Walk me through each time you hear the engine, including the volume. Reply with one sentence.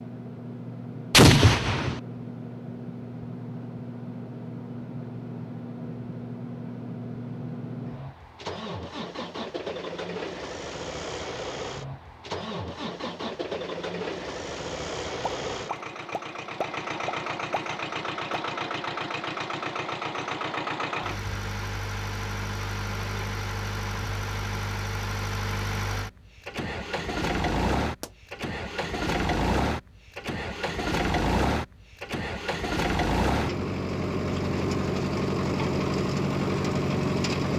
You can hear the engine from 0.0 to 37.5 s, getting louder.